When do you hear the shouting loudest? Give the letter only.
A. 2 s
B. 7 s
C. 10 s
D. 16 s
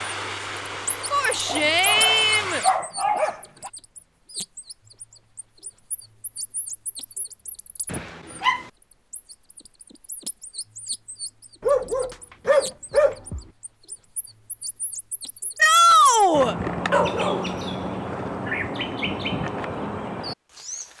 D.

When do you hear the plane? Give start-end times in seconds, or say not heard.
0.0-2.8.